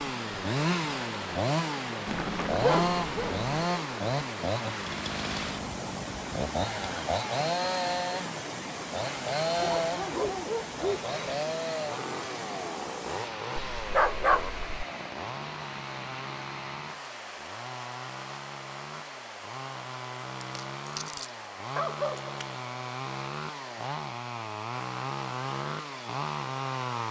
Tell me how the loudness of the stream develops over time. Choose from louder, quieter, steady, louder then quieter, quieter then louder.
quieter.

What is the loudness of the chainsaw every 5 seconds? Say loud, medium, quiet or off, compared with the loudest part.
loud, loud, medium, medium, medium, loud.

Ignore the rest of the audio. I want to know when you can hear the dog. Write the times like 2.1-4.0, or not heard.
2.0-3.6, 9.6-11.1, 13.8-14.6, 20.4-22.6.